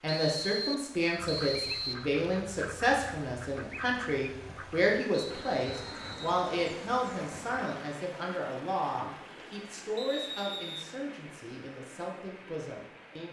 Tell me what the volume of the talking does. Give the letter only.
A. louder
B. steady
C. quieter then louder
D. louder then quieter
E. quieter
E.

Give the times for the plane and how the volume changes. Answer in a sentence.
The plane can't be heard in this clip.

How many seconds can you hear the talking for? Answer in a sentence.
You can hear the talking for 13 seconds altogether.